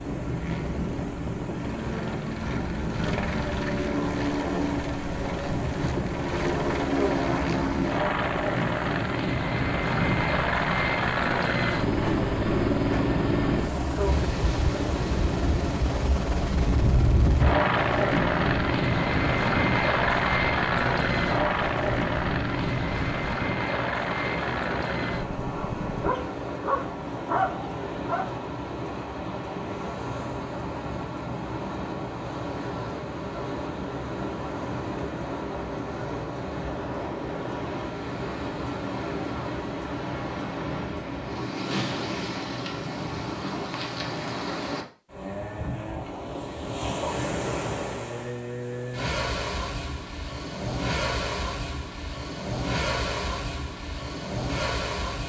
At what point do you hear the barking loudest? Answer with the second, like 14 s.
27 s.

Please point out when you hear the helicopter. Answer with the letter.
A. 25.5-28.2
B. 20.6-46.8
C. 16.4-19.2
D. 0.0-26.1
D.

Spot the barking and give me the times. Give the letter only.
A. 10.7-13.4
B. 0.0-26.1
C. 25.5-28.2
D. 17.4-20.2
C.